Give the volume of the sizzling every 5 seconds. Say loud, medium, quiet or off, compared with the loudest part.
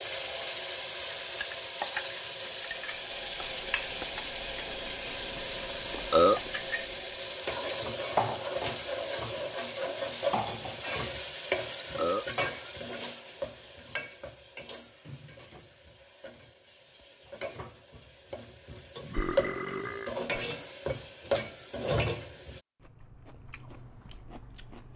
loud, loud, loud, medium, loud.